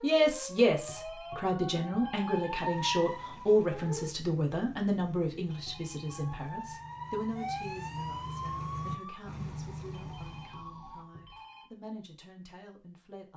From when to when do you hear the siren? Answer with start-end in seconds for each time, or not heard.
0.0-4.2, 6.0-11.1.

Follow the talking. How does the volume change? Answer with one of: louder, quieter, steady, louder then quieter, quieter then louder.
quieter.